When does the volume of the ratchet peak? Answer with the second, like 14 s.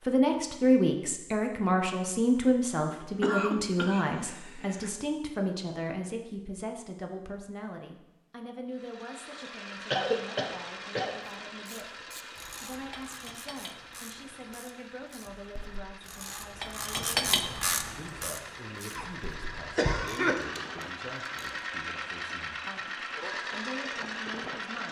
17 s.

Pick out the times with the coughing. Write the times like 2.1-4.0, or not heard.
3.0-4.9, 9.9-11.2, 18.9-20.4.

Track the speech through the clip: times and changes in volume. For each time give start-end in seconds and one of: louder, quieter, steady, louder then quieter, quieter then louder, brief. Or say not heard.
0.0-24.8 quieter.